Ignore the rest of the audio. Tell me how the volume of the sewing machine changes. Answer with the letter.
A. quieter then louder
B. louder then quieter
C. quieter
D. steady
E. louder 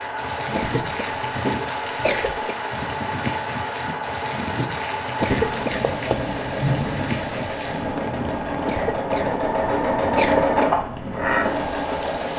E.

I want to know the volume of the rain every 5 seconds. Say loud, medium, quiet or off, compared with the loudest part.
loud, loud, medium.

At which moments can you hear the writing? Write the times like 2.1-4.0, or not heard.
5.3-7.2.